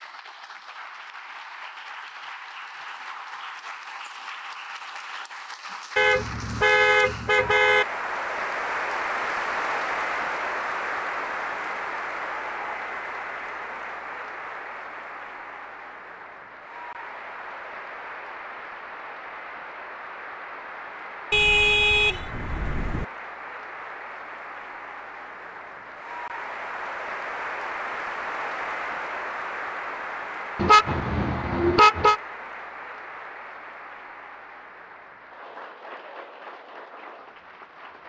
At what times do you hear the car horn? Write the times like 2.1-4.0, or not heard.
6.0-7.8, 21.3-23.1, 30.6-32.2.